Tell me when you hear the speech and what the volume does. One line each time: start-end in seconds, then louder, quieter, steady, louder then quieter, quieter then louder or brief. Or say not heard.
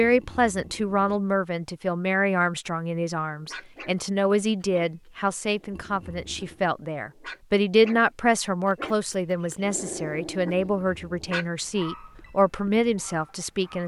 0.0-13.8 steady.